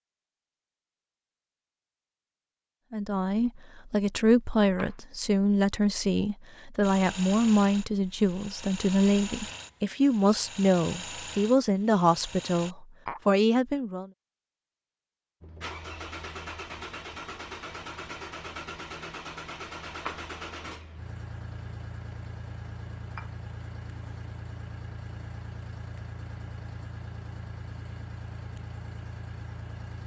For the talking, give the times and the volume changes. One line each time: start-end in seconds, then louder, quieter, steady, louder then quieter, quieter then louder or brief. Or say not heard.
2.9-14.1 steady.